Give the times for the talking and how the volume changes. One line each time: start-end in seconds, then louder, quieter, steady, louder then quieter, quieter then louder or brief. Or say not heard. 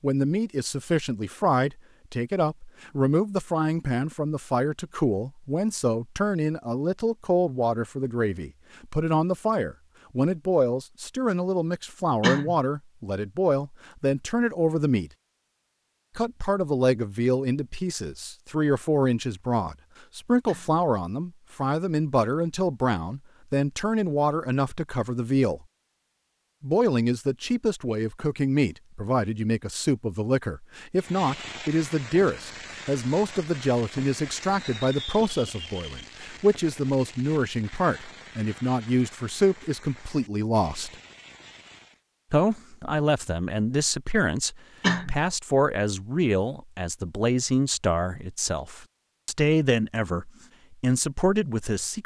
0.0-15.1 steady
16.1-25.6 steady
26.6-41.0 steady
42.3-52.0 steady.